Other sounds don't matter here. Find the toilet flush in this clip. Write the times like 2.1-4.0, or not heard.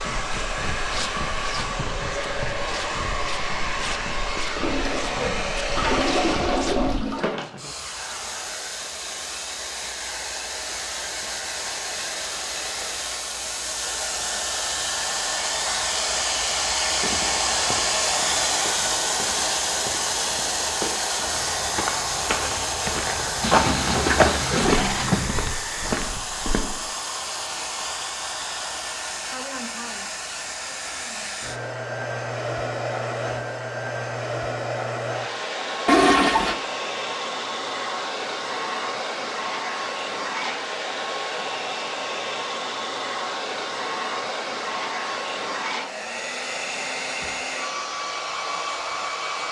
4.6-7.3, 23.4-25.4, 35.9-36.5.